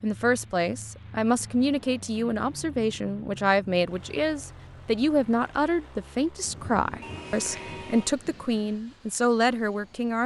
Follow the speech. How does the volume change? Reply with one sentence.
The loudness of the speech stays about the same.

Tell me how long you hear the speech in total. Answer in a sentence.
The speech can be heard for 10 seconds in total.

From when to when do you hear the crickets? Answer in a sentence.
You can't hear the crickets here.